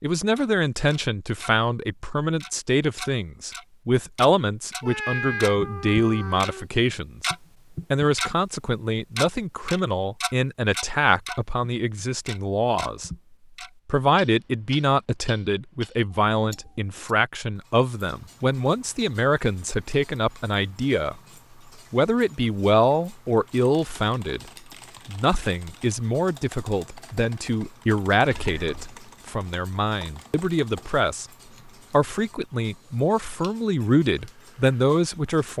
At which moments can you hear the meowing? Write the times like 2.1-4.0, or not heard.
4.8-6.7, 28.3-28.9.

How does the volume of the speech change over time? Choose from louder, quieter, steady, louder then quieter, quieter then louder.
steady.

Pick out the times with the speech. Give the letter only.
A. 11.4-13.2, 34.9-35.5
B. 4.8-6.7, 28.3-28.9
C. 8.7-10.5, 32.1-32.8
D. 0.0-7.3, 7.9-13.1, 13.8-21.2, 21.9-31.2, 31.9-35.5
D.